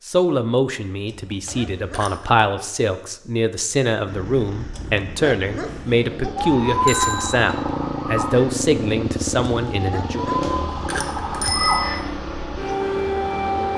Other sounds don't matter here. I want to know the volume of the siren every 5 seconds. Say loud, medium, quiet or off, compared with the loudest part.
off, loud, loud.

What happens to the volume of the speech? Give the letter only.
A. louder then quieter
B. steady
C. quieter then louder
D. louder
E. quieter
B.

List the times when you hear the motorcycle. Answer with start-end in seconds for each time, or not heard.
4.0-13.7.